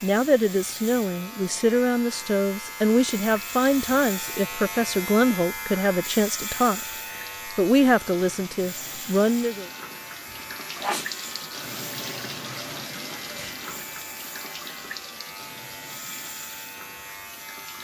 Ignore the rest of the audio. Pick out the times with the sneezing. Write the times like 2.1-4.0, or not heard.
10.3-11.1.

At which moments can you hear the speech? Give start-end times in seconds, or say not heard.
0.0-9.7.